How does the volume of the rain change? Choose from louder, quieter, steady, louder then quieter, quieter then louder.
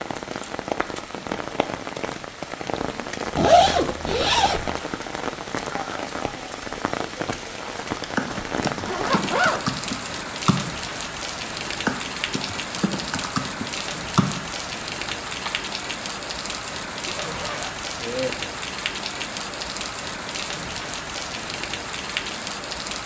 steady.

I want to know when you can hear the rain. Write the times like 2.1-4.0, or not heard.
0.0-23.0.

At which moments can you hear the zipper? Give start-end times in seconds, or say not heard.
3.4-4.8, 8.7-9.7, 17.1-18.4.